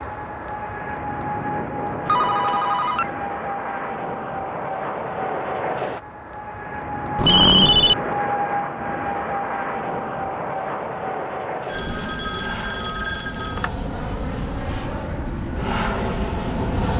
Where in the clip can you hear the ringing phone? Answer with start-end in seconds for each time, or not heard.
2.0-3.1, 7.2-8.0, 11.7-13.7.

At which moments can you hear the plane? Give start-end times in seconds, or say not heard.
0.0-16.9.